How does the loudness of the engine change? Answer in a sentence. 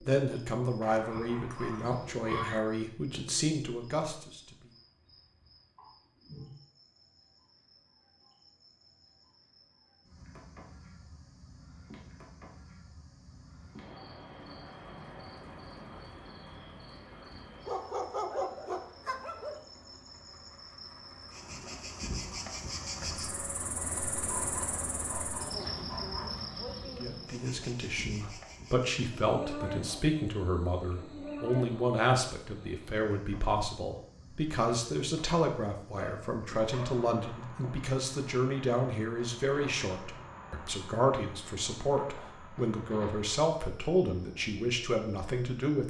The loudness of the engine goes up.